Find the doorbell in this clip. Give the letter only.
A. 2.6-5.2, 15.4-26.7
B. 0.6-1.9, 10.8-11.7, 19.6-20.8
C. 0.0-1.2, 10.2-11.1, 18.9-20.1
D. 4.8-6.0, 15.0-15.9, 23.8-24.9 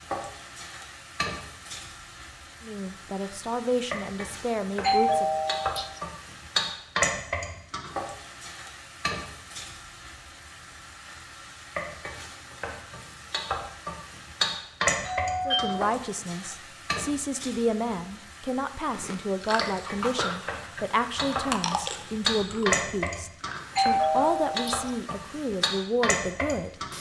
D.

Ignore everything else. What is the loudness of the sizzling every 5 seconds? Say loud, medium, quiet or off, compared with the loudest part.
medium, loud, loud, medium, loud, loud.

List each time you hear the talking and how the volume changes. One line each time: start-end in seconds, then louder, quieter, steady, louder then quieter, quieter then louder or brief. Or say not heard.
2.6-5.2 brief
15.4-26.7 steady.